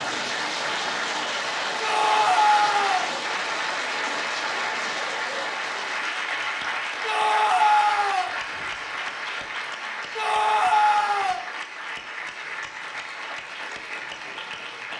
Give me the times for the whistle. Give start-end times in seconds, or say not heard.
not heard.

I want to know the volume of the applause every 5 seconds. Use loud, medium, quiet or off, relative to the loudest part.
loud, loud, medium.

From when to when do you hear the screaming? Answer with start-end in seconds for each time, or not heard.
1.8-3.1, 7.0-8.3, 10.2-11.4.